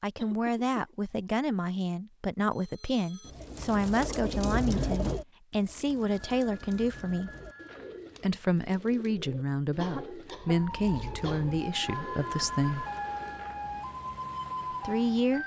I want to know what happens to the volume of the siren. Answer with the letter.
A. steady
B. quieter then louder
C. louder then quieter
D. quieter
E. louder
E.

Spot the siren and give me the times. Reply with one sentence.
The siren can be heard from 10.3 to 15.4 s.